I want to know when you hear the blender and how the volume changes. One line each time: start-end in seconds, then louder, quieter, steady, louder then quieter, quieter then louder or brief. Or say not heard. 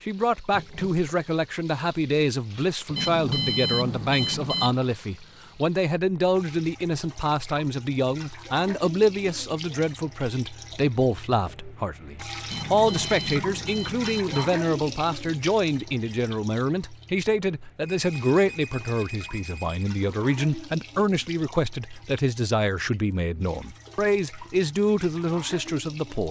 not heard.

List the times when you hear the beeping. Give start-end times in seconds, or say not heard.
3.0-4.8, 12.5-14.5, 17.9-19.9.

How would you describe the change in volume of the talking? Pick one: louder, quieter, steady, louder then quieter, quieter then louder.
steady.